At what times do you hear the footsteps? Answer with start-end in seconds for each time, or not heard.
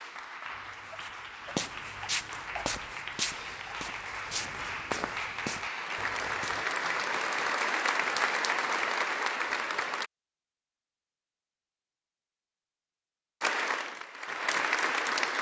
0.5-6.7.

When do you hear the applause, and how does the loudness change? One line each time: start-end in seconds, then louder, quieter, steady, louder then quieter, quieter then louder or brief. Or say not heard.
0.0-10.1 louder
13.4-15.3 brief.